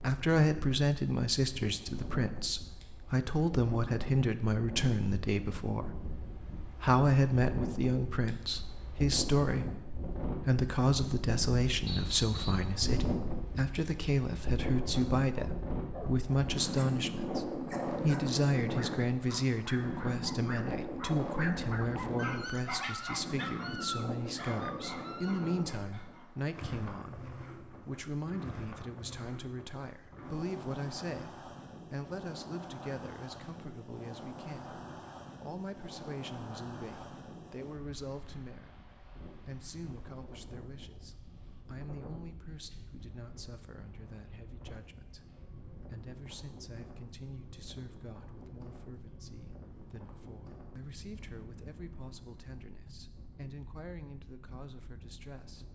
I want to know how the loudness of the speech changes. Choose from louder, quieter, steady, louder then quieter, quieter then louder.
quieter.